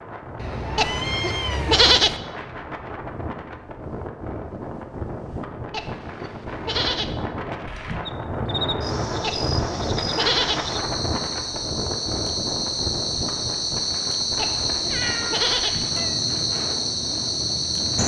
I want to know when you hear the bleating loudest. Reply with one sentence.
The volume of the bleating peaks at 2 seconds.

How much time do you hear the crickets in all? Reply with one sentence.
You can hear the crickets for 10 seconds altogether.